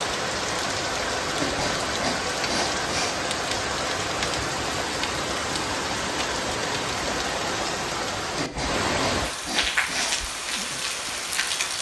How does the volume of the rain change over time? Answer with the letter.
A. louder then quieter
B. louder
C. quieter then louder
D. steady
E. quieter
D.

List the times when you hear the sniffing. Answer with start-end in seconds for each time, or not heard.
1.4-3.1, 8.3-10.2.